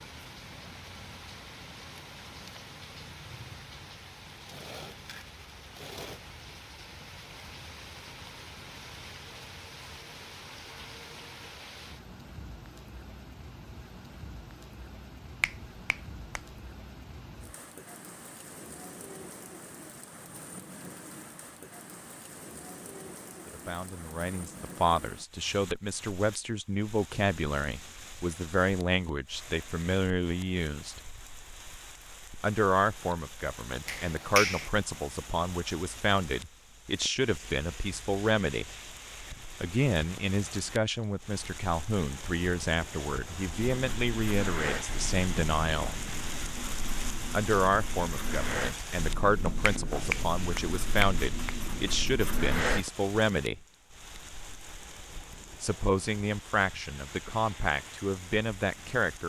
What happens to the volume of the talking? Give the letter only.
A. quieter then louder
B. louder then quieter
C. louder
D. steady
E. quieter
D.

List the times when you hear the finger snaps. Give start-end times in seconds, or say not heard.
15.4-16.4, 33.9-34.7, 49.6-51.5.